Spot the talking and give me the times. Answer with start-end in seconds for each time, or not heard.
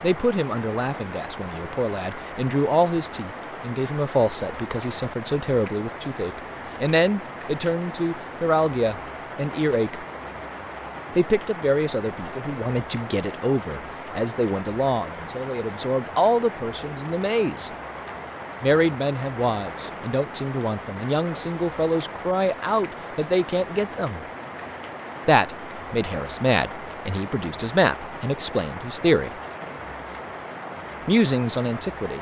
0.0-10.1, 11.2-17.7, 18.6-24.2, 25.2-29.3, 31.1-32.1.